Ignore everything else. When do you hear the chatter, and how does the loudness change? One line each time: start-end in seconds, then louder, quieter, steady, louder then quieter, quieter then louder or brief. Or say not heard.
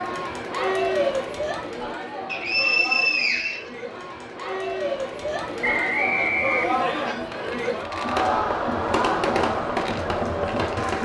0.0-10.9 quieter then louder.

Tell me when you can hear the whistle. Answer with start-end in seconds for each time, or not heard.
2.3-3.6, 5.6-7.2.